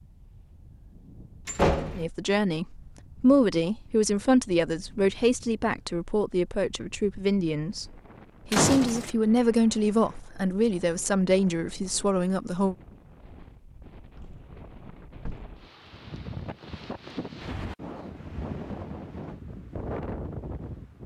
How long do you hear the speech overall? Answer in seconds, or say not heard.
11 s.